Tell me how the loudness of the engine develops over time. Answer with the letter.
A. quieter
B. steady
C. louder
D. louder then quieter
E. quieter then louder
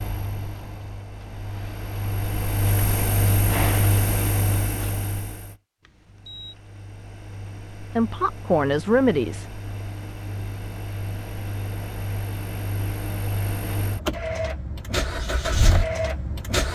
E.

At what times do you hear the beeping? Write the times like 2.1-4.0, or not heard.
5.8-6.5.